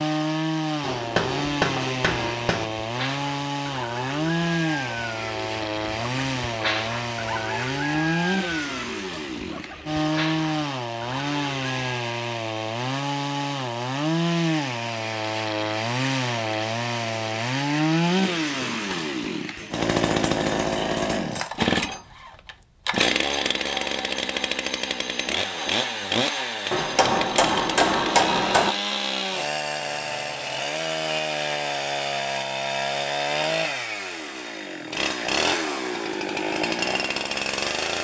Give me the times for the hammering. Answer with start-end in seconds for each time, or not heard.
0.8-2.6, 18.1-19.9, 26.7-28.7.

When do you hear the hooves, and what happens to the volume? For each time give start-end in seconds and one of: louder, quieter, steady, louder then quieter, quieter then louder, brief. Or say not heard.
not heard.